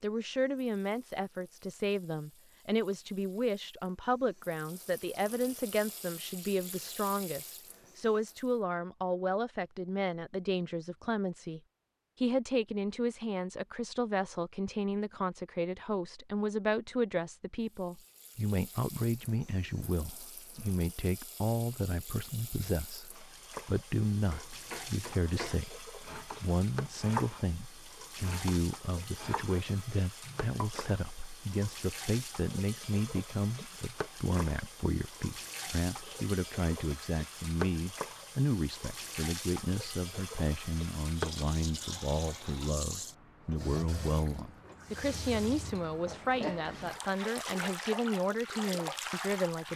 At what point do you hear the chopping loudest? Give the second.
27 s.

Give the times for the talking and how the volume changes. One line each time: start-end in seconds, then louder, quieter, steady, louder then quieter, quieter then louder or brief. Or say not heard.
0.0-11.6 steady
12.2-49.7 steady.